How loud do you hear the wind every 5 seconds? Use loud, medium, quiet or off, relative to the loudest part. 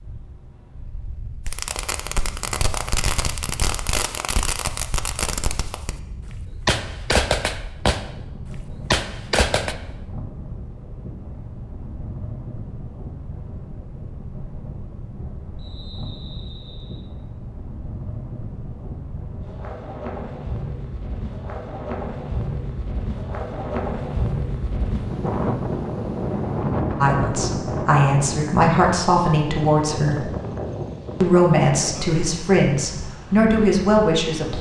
quiet, quiet, medium, medium, loud, loud, medium.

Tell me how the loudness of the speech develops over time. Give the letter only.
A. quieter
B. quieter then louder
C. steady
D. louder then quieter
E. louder
C.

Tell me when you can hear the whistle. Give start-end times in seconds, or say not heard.
15.6-17.1.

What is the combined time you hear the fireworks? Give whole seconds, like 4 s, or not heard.
8 s.